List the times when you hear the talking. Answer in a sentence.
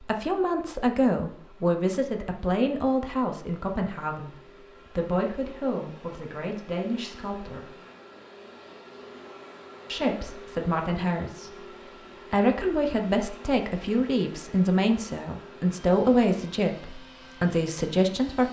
The talking can be heard from 0.0 to 7.7 s, from 9.8 to 11.6 s and from 12.3 to 18.4 s.